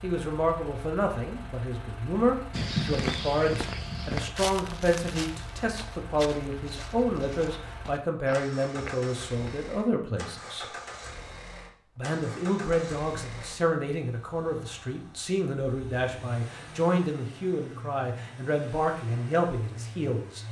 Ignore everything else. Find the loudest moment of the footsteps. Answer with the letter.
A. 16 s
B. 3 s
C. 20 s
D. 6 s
B.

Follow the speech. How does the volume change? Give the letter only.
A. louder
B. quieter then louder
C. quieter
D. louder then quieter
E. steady
E.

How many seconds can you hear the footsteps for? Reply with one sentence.
The footsteps can be heard for 7 seconds in total.